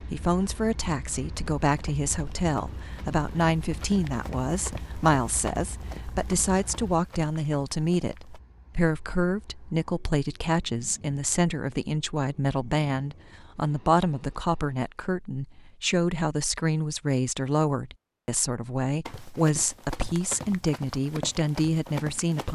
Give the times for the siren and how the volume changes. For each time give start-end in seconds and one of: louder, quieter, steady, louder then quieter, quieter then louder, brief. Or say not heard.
not heard.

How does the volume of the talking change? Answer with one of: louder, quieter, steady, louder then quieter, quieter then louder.
steady.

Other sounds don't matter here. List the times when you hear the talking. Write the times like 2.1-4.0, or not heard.
0.0-22.4.